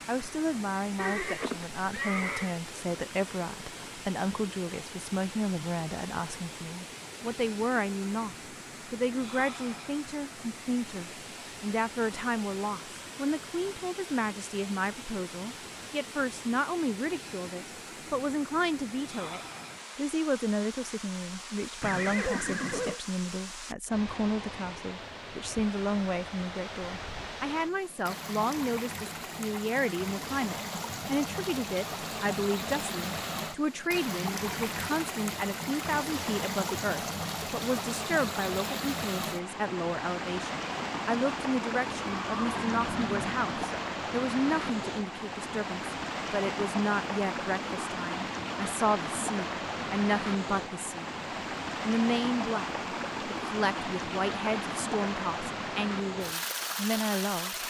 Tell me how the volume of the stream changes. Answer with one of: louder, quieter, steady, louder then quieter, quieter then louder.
louder.